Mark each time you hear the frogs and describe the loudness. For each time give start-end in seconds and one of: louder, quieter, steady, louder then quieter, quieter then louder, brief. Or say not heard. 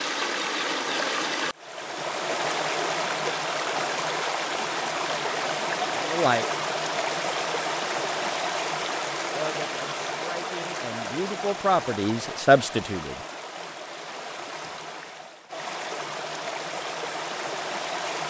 not heard.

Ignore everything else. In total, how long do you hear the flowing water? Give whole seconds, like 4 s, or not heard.
18 s.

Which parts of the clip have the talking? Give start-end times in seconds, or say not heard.
5.2-6.5, 9.3-13.2.